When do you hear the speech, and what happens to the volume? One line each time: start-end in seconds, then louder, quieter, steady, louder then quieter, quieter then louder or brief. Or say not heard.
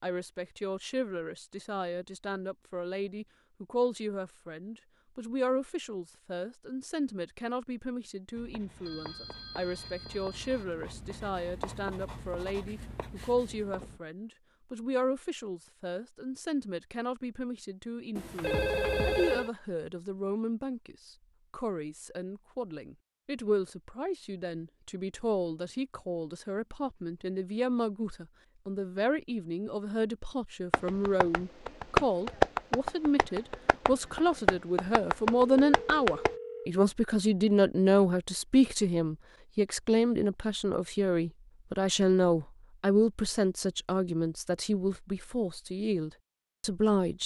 0.0-47.2 louder.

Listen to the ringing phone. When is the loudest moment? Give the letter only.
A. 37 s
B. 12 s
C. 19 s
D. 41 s
C.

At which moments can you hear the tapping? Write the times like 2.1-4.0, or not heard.
30.7-36.3.